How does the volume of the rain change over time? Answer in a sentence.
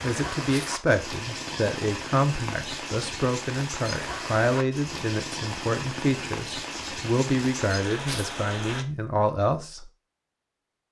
The loudness of the rain stays about the same.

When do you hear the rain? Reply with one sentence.
The rain can be heard from 0.0 to 8.8 s.